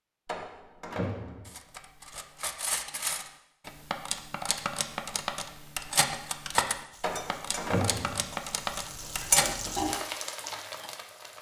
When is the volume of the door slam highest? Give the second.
8 s.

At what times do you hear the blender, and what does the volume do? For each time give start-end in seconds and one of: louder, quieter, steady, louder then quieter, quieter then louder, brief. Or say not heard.
not heard.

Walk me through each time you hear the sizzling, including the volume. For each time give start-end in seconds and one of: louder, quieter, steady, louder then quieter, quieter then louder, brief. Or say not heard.
6.9-11.3 louder then quieter.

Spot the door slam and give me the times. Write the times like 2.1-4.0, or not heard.
0.2-1.6, 7.0-8.3.